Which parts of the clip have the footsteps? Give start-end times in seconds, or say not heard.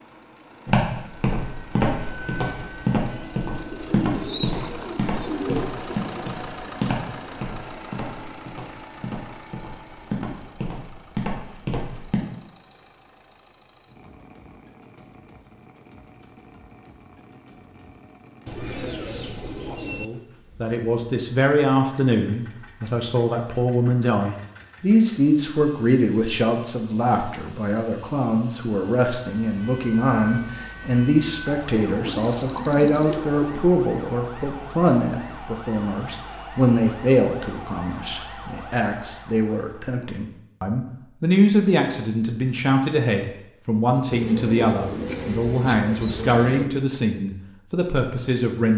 0.7-12.2.